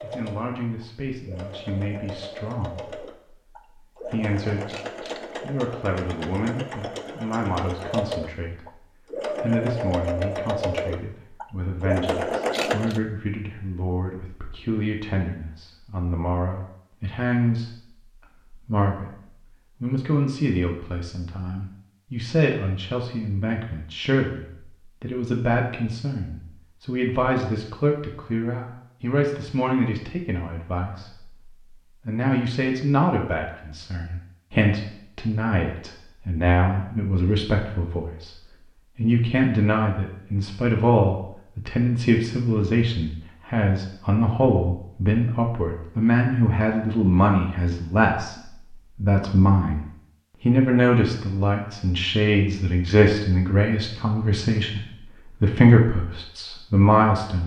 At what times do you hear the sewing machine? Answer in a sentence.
You can hear the sewing machine from 0.0 to 13.0 s.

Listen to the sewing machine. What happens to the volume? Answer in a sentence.
The volume of the sewing machine goes up.